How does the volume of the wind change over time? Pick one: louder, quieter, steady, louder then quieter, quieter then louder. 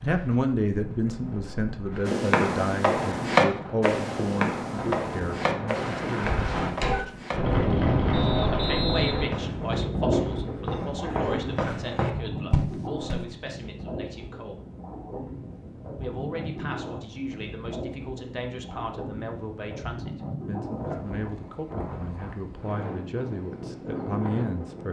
louder then quieter.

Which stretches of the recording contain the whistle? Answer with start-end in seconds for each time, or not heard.
8.1-9.6.